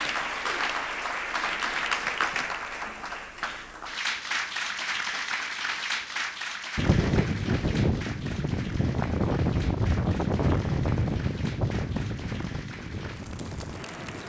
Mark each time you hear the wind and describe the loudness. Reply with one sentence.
The wind can be heard from 6.8 to 14.2 s, getting quieter.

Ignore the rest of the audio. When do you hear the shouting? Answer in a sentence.
You can't hear the shouting here.